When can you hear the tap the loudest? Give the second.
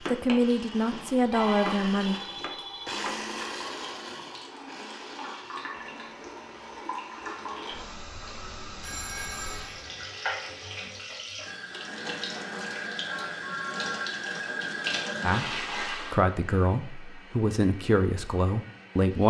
15 s.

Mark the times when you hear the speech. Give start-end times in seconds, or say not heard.
0.0-2.1, 15.2-19.2.